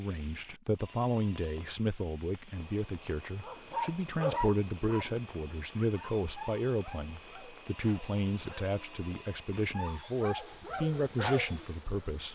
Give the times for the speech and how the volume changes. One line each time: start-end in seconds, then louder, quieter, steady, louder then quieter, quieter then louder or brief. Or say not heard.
0.0-12.2 steady.